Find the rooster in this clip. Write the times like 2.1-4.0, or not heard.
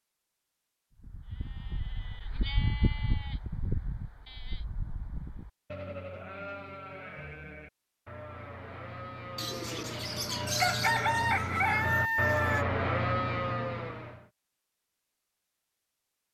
9.3-12.7.